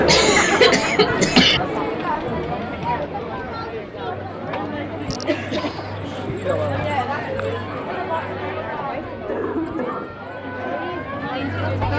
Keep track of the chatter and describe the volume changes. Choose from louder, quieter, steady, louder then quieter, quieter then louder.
quieter.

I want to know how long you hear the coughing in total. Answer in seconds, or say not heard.
3 s.